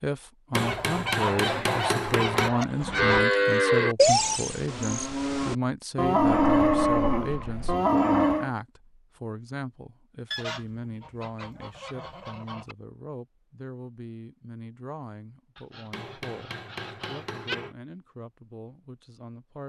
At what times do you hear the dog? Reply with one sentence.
The dog can't be heard in this clip.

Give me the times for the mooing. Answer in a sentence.
You can hear the mooing from 2.8 to 8.5 s.